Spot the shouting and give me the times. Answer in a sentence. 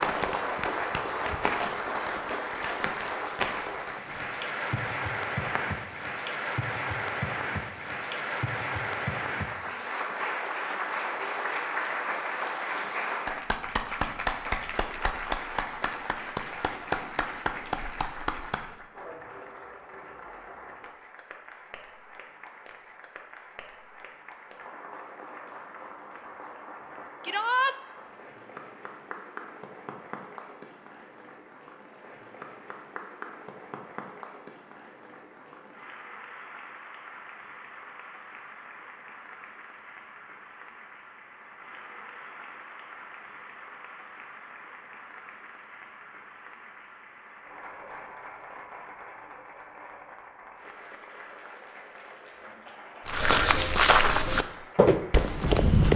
You can hear the shouting from 27.2 to 27.8 s.